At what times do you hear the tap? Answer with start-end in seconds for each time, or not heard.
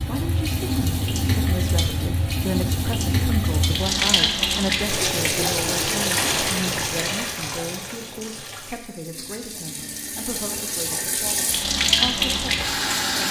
0.0-13.2.